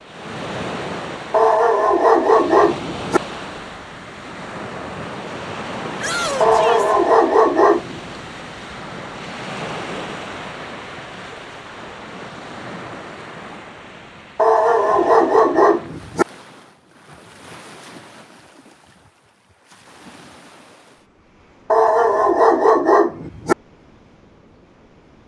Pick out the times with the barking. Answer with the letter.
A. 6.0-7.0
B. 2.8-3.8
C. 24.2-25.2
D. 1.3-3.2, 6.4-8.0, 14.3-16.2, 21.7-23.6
D.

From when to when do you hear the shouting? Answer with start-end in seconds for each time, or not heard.
6.0-7.0.